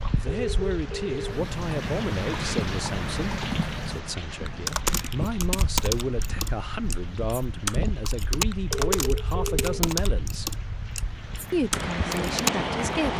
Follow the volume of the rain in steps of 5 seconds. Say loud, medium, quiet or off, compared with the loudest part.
loud, medium, loud.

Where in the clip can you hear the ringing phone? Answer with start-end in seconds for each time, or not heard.
0.2-1.4, 8.7-9.9.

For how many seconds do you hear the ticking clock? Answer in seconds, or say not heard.
not heard.